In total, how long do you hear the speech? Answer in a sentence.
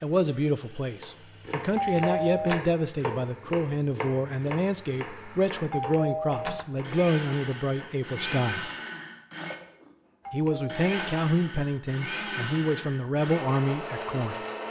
You can hear the speech for 13 seconds altogether.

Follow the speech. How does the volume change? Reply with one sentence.
The volume of the speech stays about the same.